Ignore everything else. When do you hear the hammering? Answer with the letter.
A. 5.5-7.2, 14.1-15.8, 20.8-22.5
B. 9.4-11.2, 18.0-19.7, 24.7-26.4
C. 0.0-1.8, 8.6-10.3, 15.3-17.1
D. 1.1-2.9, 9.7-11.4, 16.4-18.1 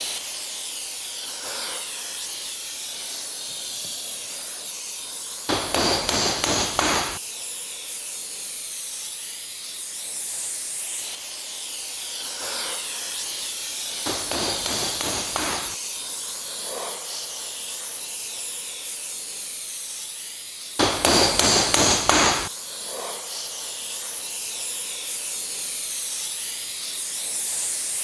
A.